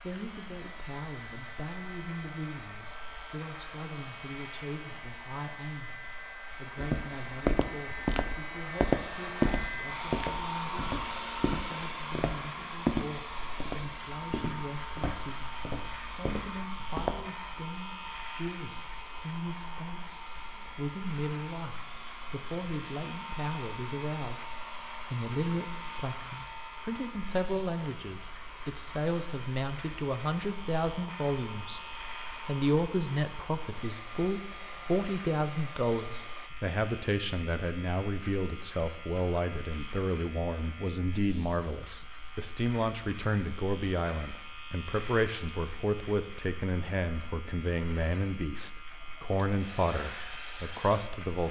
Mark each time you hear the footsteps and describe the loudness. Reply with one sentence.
The footsteps can be heard from 6.8 to 17.3 s, getting quieter.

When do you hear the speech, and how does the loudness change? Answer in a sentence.
The speech can be heard from 0.0 to 51.4 s, getting louder.